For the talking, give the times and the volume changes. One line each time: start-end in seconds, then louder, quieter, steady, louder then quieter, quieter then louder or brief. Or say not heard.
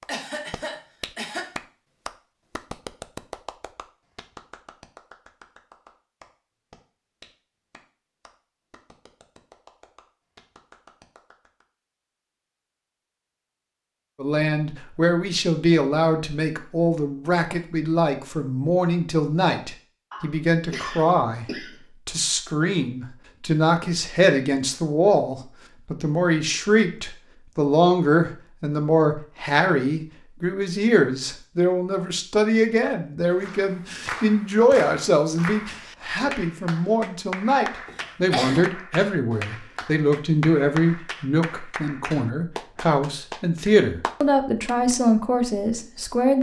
14.2-21.4 steady
22.1-46.3 steady.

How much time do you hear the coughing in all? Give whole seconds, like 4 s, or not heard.
4 s.